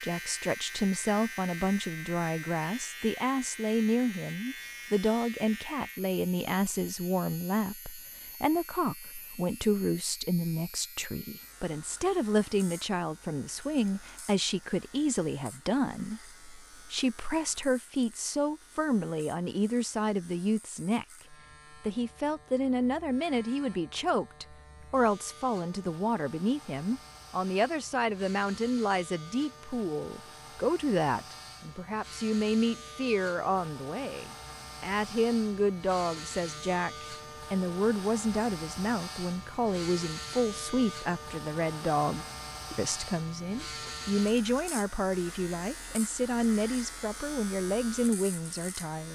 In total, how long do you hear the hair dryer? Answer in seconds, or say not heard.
not heard.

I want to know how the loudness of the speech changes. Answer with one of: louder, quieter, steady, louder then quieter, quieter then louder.
steady.